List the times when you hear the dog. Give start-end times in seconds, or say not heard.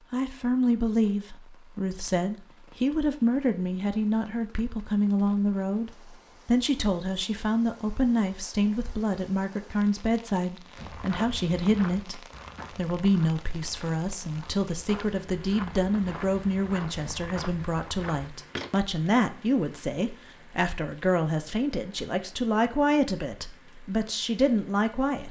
not heard.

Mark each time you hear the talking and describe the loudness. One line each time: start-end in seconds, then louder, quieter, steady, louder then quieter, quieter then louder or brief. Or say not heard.
0.1-25.2 steady.